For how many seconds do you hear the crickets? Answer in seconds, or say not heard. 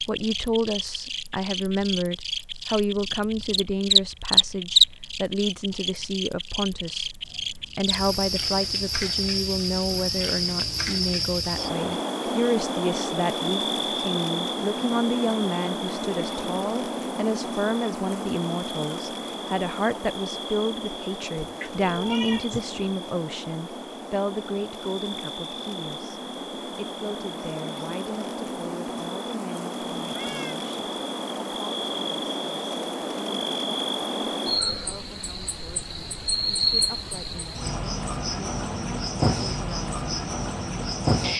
41 s.